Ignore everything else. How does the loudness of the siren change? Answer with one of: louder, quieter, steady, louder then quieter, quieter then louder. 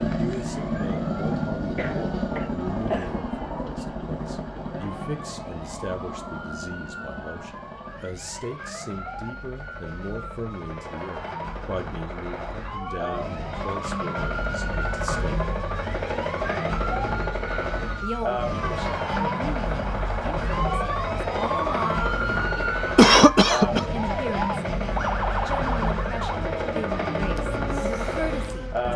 louder.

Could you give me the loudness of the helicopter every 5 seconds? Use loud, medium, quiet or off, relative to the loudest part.
loud, medium, medium, loud, loud, loud.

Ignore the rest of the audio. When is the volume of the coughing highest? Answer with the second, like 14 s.
23 s.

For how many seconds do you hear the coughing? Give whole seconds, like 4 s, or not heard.
3 s.